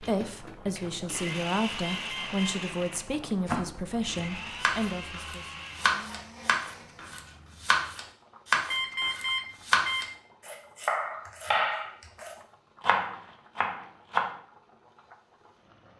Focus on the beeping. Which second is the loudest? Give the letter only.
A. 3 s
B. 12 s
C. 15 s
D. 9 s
D.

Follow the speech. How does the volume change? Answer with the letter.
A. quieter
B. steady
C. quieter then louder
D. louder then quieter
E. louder
B.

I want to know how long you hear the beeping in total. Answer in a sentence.
The beeping can be heard for 2 seconds in total.